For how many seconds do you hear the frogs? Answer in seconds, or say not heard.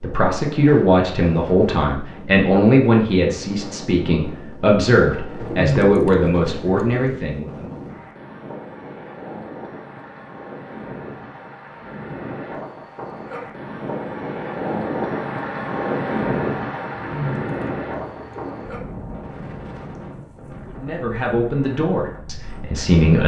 not heard.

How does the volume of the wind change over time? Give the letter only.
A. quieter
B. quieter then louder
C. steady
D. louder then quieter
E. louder
D.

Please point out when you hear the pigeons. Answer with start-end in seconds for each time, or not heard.
5.4-7.2, 16.9-18.7.